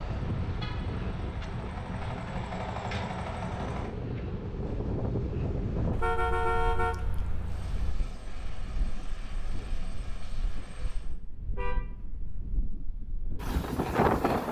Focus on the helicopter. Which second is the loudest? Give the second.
3 s.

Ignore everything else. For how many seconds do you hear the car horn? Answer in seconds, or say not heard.
4 s.